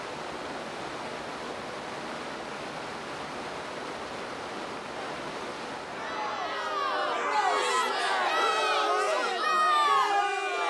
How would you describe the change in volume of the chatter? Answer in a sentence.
The volume of the chatter goes up.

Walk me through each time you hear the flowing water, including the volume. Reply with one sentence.
The flowing water can be heard from 0.0 to 8.8 s, getting quieter.